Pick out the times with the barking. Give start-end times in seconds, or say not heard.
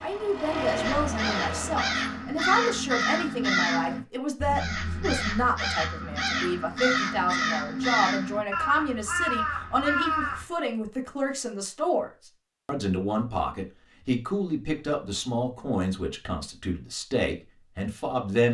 not heard.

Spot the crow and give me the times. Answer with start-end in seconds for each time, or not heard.
0.8-10.4.